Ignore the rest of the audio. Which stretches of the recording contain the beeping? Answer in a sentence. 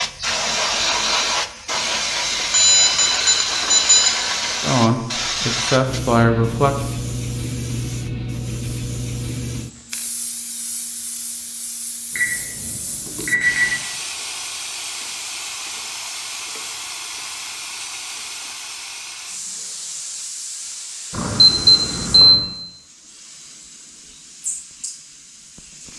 The beeping can be heard from 2.5 to 4.2 s, from 12.2 to 13.8 s and from 21.1 to 22.4 s.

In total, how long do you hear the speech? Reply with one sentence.
The speech can be heard for 2 seconds in total.